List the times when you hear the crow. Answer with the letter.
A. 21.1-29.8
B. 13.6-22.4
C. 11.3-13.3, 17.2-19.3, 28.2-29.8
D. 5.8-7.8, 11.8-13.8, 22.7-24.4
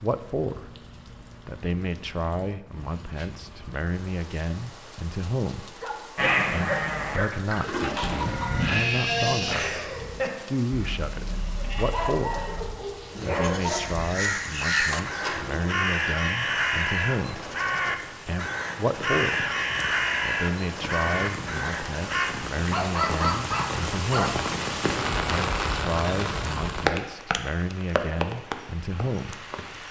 B.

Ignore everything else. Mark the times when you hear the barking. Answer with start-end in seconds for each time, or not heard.
5.8-7.8, 11.8-13.8, 22.7-24.4.